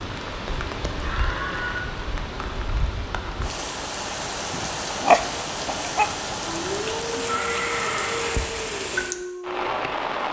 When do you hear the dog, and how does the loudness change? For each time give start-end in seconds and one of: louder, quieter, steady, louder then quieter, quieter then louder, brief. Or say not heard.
4.3-9.7 quieter.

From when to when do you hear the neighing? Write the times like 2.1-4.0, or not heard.
1.0-1.9, 6.2-8.3.